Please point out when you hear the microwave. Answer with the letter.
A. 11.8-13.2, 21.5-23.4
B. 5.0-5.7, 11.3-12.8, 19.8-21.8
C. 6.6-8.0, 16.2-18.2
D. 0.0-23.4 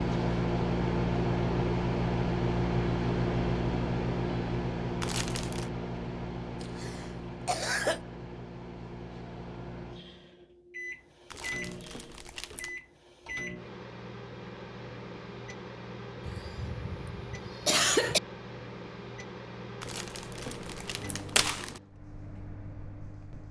D.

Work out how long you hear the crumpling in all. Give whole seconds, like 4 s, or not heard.
4 s.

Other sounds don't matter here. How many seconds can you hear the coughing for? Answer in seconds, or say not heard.
3 s.